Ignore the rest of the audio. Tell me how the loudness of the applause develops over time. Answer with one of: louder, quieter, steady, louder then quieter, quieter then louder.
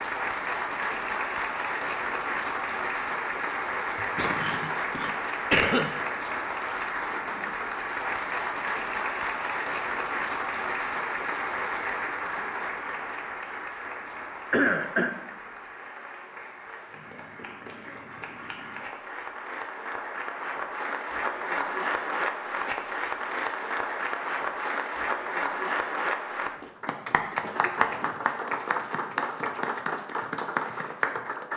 quieter then louder.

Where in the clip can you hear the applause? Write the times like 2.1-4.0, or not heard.
0.0-31.5.